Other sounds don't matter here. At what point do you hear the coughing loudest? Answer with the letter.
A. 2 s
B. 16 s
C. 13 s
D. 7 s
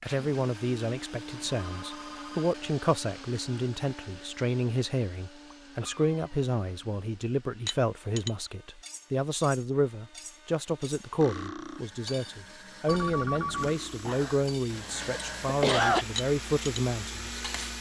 B.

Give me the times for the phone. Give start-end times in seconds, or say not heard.
1.5-2.5, 12.8-13.8.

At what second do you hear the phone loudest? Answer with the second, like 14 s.
13 s.